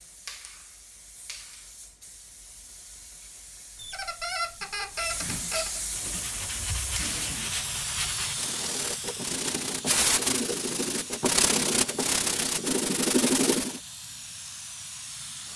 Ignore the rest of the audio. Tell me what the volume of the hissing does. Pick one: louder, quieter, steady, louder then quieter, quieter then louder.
louder then quieter.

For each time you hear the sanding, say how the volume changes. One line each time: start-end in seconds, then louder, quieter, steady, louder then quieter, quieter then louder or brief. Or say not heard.
5.8-13.8 louder.